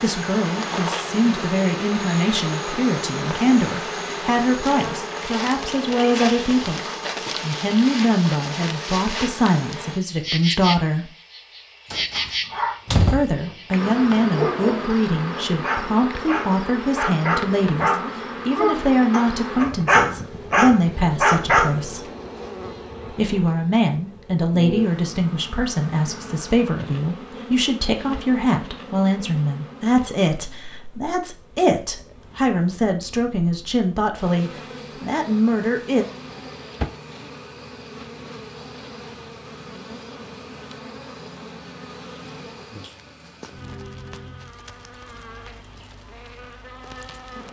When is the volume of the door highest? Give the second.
13 s.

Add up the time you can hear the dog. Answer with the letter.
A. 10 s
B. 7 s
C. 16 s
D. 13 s
A.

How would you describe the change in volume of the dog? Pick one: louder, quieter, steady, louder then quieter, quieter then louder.
louder.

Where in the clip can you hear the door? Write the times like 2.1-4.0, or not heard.
11.9-13.3, 36.0-36.9.